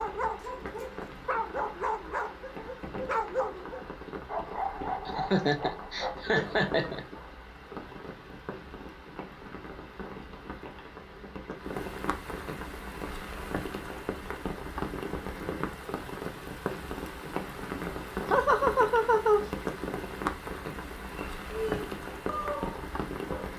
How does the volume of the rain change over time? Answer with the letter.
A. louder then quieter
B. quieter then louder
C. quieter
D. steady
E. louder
E.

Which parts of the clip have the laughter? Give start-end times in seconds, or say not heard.
5.0-7.0, 17.8-19.5.